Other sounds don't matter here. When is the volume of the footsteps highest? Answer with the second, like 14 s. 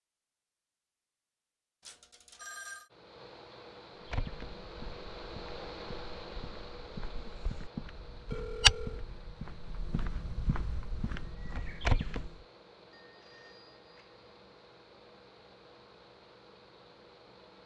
9 s.